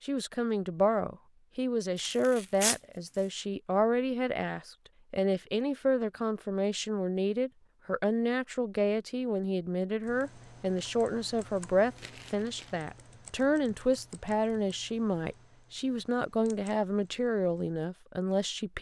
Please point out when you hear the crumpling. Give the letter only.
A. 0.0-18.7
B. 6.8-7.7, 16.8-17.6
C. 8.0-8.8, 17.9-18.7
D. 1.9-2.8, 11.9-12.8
D.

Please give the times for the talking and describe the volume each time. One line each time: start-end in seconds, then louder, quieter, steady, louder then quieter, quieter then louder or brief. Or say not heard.
0.0-18.7 steady.